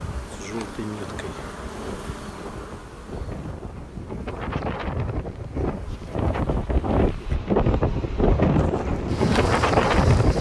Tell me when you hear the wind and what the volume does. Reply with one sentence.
The wind can be heard from 0.1 to 10.3 s, getting louder.